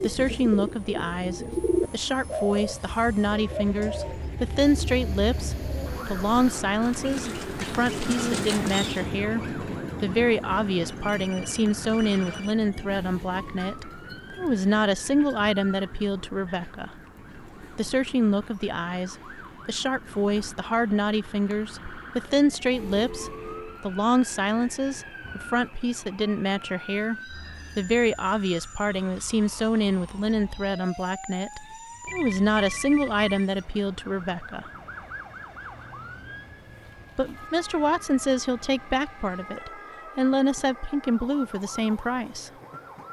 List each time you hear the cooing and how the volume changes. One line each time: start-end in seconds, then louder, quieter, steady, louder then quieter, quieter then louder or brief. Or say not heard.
0.0-9.1 quieter then louder.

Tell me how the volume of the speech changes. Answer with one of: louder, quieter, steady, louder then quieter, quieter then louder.
steady.